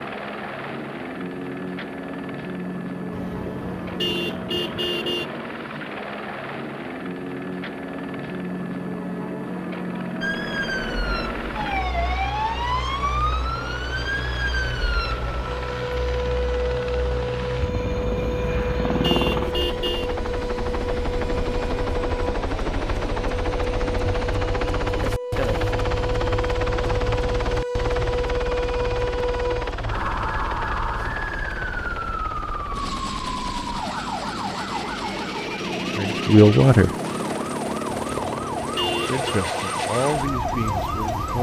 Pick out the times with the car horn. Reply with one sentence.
The car horn can be heard from 3.1 to 5.2 s, from 18.1 to 20.1 s and from 38.0 to 39.3 s.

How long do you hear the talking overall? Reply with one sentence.
You can hear the talking for 3 seconds altogether.